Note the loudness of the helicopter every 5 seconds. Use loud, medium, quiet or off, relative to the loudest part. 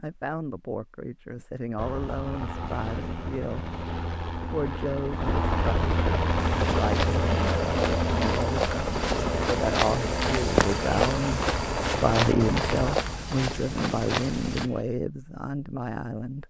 medium, loud, loud, off.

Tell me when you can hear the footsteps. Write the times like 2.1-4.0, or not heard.
6.3-14.7.